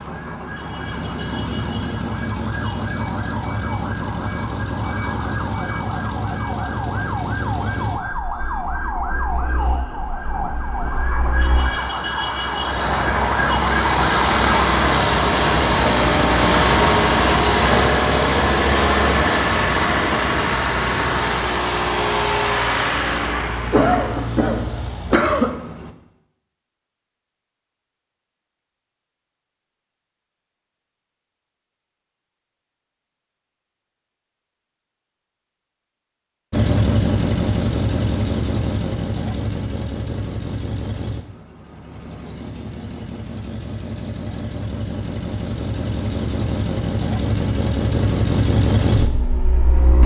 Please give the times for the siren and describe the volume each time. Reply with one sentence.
You can hear the siren from 0.0 to 14.7 s, getting louder.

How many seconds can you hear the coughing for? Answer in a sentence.
The coughing can be heard for 2 seconds in total.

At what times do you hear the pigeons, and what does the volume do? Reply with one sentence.
You can't hear the pigeons here.